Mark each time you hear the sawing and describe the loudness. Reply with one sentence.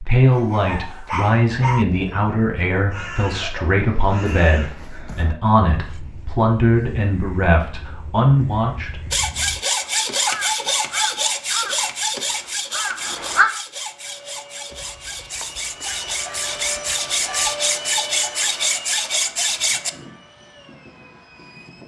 The sawing can be heard from 9.1 to 19.9 s, getting quieter then louder.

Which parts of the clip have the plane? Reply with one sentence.
The plane can be heard from 13.8 to 21.8 s.